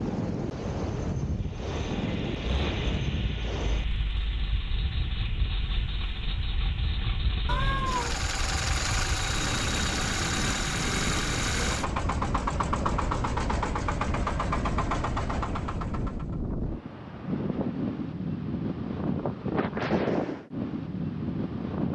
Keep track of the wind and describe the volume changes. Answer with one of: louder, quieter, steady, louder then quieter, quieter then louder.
quieter then louder.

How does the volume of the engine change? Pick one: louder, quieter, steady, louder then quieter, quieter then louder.
louder.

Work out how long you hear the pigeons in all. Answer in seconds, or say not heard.
not heard.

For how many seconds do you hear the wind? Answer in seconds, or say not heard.
22 s.